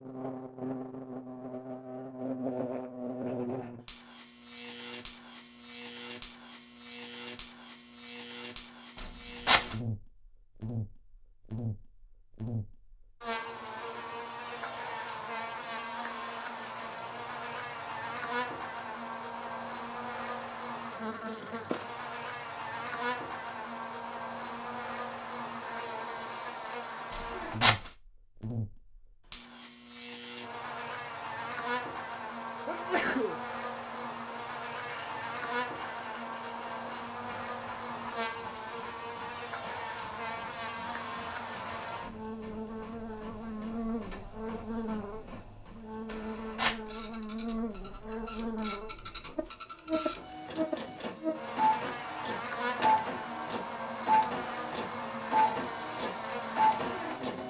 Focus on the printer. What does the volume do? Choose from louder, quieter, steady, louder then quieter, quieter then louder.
louder.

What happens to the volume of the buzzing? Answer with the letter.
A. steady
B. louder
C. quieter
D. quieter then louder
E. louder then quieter
A.